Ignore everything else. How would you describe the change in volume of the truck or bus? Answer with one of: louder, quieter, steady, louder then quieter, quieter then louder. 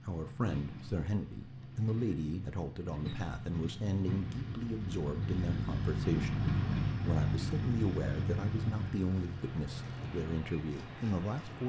louder then quieter.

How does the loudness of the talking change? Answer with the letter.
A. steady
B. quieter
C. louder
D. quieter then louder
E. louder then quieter
A.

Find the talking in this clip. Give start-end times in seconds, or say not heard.
0.1-11.6.